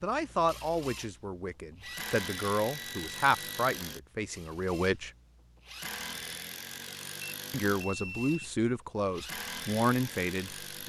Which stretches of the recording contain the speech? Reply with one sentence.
You can hear the speech from 0.0 to 5.1 s and from 7.5 to 10.8 s.